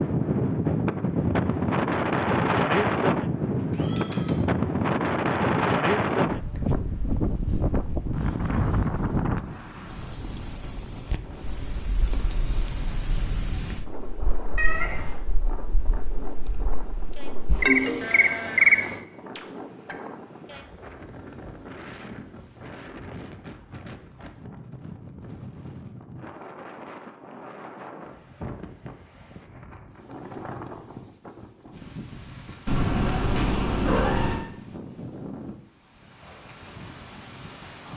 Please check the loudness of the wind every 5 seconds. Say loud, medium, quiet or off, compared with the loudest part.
loud, loud, quiet, quiet, quiet, quiet, quiet, quiet.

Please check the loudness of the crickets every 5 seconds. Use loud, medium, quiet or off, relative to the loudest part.
quiet, quiet, loud, loud, off, off, off, off.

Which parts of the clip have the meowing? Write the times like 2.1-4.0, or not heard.
3.7-4.3, 14.6-15.2, 32.6-34.5.